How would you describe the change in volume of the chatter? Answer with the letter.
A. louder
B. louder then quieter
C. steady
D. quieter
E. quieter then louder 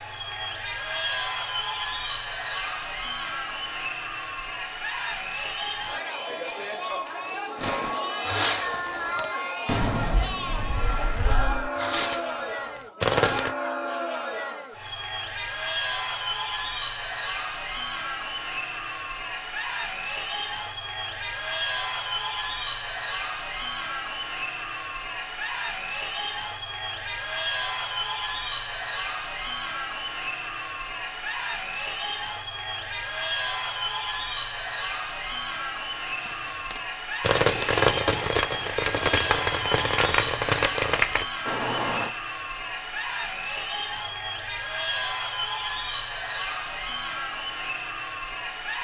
C.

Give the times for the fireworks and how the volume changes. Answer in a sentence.
You can hear the fireworks from 7.6 to 13.6 s, getting quieter then louder; and from 36.2 to 42.1 s, at a steady volume.